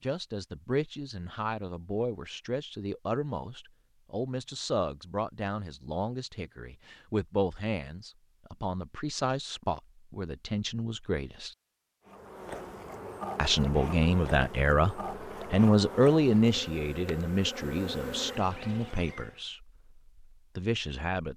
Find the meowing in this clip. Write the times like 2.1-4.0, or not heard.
not heard.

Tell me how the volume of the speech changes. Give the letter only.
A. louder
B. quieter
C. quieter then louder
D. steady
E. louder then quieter
E.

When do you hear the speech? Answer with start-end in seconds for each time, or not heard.
0.0-11.6, 13.3-21.3.